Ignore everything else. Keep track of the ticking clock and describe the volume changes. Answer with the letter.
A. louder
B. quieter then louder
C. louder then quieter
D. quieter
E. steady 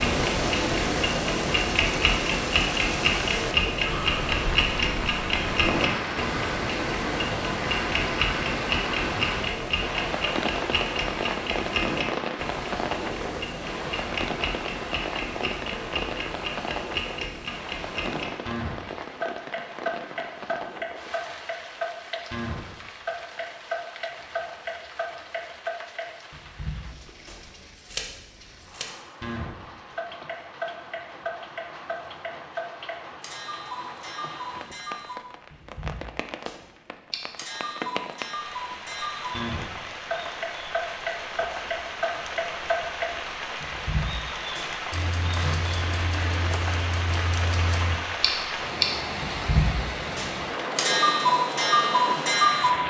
B.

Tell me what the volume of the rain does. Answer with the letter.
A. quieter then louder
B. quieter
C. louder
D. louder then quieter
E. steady
A.